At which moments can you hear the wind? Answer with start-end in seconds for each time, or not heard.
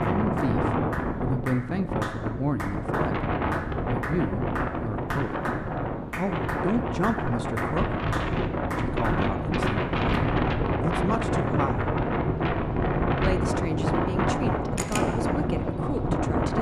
0.0-16.5.